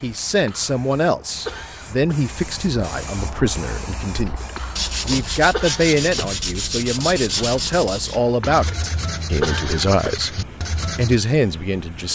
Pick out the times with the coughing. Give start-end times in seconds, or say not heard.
0.2-0.8, 1.4-2.2, 4.2-4.8, 5.5-6.2, 8.2-8.7, 9.4-10.2.